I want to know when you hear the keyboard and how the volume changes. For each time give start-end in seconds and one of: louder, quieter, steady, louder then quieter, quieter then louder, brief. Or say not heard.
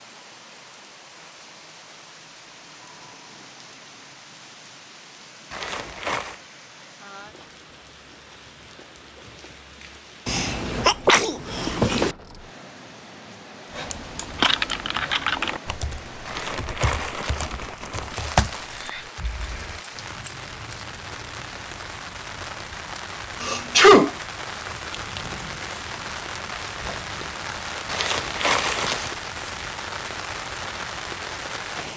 13.7-19.8 quieter then louder.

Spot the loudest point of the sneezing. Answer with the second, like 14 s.
24 s.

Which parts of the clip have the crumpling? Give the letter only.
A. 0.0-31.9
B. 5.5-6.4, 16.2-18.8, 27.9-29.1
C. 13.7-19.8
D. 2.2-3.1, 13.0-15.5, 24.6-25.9
B.